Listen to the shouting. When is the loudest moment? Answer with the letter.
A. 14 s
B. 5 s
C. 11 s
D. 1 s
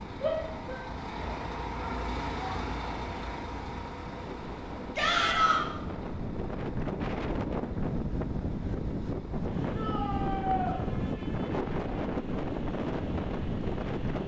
B.